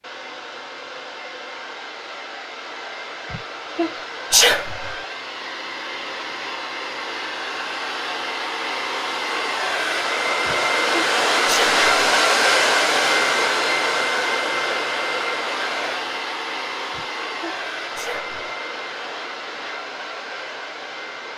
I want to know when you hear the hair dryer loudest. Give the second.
12 s.